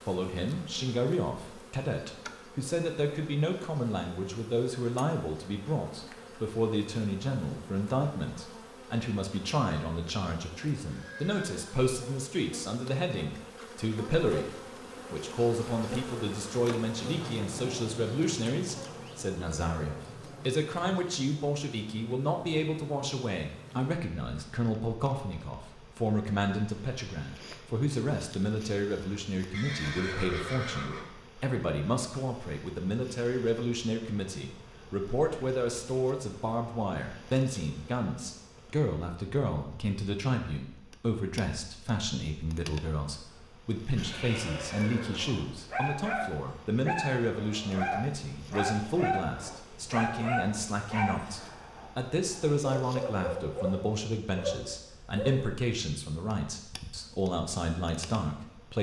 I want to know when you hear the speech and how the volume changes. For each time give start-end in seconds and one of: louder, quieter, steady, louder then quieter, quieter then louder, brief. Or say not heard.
0.1-58.7 steady.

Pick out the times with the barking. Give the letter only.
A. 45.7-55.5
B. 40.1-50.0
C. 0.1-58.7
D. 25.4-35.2
A.